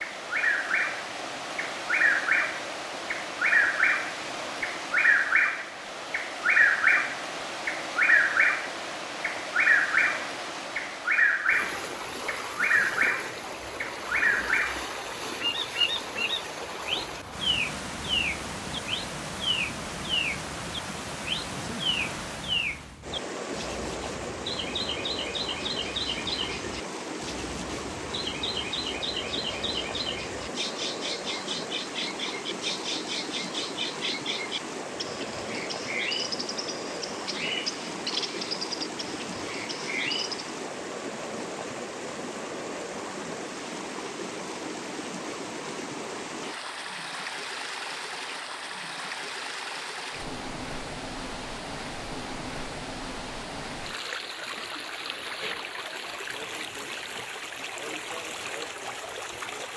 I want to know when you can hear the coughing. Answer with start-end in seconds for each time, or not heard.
not heard.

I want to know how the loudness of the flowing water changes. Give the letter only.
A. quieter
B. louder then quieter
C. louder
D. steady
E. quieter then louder
D.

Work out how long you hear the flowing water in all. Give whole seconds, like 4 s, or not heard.
60 s.